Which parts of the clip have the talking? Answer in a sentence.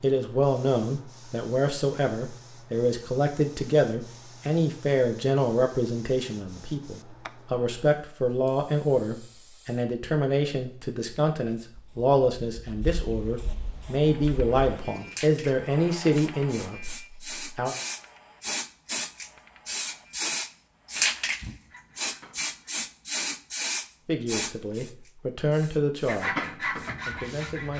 The talking can be heard from 0.0 to 17.8 s and from 24.1 to 27.7 s.